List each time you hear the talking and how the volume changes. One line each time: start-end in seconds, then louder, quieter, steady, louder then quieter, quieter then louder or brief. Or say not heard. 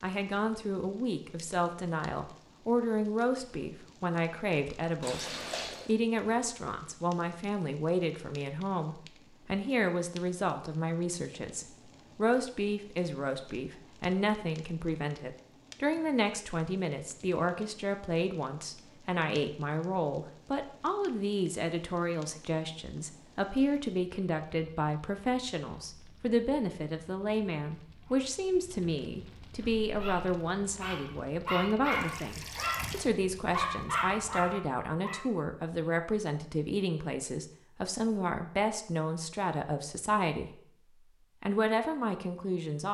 0.0-40.7 steady
41.4-42.8 brief.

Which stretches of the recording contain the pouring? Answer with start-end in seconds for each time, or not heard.
5.0-6.0, 31.9-33.1.